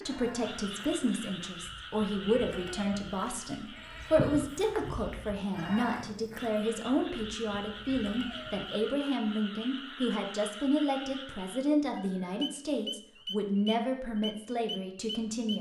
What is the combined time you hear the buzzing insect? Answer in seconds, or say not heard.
not heard.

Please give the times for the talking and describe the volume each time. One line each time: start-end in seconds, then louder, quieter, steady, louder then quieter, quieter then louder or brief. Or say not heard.
0.1-15.5 steady.